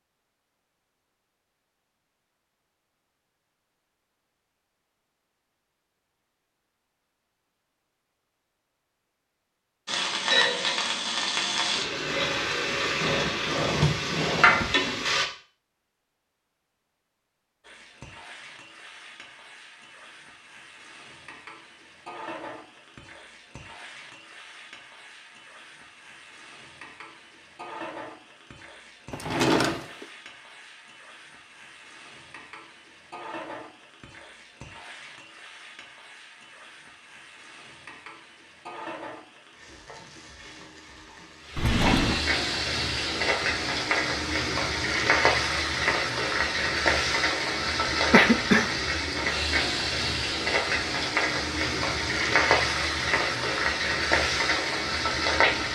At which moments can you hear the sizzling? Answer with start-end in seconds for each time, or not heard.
9.8-15.2, 17.6-55.7.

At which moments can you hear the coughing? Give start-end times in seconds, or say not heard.
48.1-48.7.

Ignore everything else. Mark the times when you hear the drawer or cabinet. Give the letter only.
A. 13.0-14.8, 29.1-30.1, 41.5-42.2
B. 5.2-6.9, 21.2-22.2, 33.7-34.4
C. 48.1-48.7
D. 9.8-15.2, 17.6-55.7
A.